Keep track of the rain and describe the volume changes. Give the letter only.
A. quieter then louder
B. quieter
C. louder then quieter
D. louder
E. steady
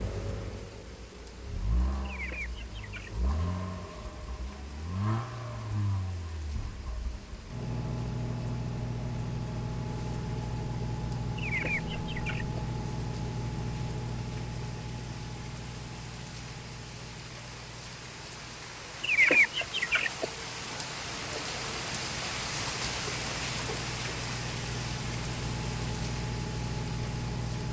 D.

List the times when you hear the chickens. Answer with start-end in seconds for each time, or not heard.
2.0-3.2, 11.3-12.6, 19.0-20.2.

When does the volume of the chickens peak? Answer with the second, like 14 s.
19 s.